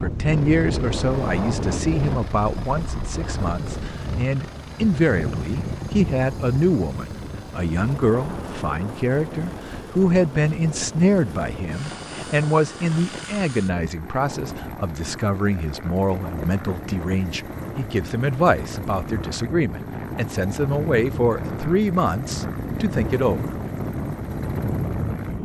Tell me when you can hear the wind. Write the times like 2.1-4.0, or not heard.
0.0-25.4.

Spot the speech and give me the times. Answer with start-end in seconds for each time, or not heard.
0.0-23.6.